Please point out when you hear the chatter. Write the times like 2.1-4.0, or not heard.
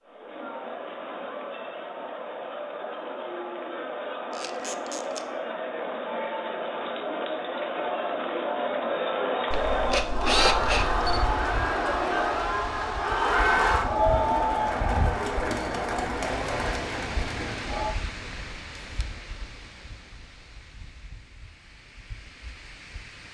0.0-17.9.